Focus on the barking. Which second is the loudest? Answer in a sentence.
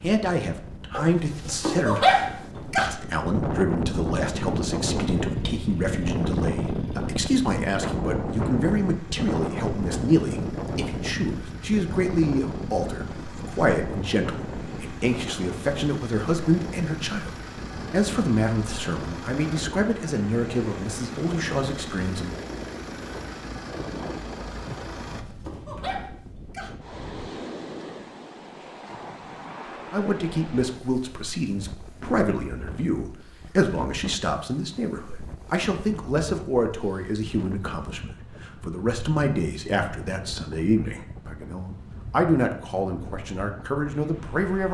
The loudest moment of the barking is at 2 seconds.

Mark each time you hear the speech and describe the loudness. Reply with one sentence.
You can hear the speech from 0.0 to 22.4 s, at a steady volume; and from 29.9 to 44.6 s, at a steady volume.